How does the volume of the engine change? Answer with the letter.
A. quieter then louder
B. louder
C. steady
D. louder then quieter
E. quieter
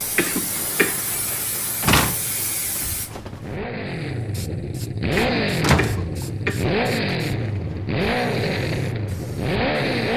B.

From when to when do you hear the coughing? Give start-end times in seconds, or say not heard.
0.1-1.0, 5.2-6.8.